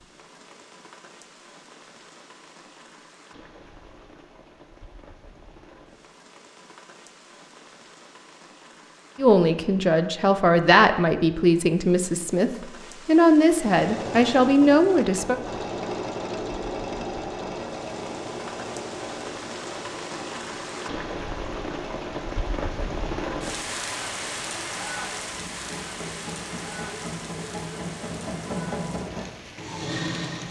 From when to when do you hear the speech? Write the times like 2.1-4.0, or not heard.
9.2-15.4.